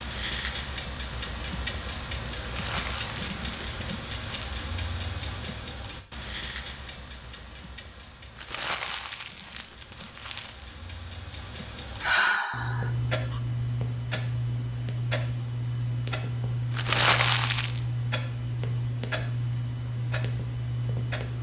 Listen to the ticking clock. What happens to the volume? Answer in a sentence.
The loudness of the ticking clock goes down, then up.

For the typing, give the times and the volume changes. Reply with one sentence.
The typing can't be heard in this clip.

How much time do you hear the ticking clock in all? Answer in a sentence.
The ticking clock can be heard for 21 seconds in total.